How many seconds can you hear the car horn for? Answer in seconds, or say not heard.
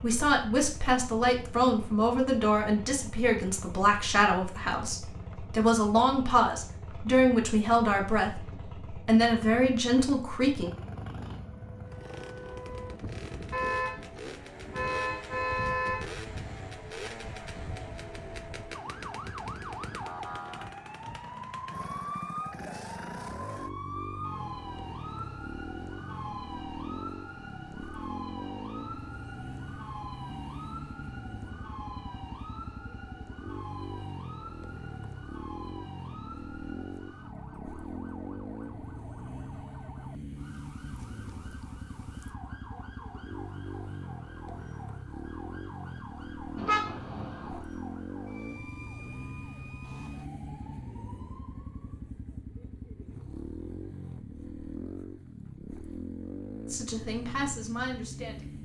4 s.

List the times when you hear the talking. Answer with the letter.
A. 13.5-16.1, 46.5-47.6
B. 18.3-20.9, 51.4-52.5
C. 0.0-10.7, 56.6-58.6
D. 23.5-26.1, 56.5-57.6
C.